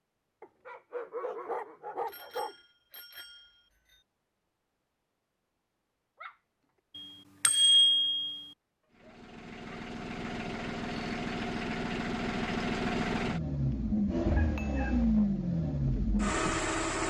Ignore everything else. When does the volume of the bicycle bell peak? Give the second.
8 s.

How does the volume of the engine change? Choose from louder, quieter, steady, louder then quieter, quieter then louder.
louder.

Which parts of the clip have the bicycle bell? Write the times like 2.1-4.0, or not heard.
2.0-4.0, 7.0-8.4, 13.7-14.8.